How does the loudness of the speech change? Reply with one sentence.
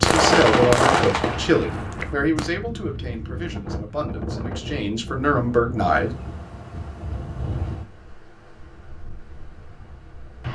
The loudness of the speech goes down, then up.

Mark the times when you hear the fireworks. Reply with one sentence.
The fireworks can be heard from 0.0 to 2.5 s.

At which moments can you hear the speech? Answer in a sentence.
You can hear the speech from 0.0 to 6.2 s.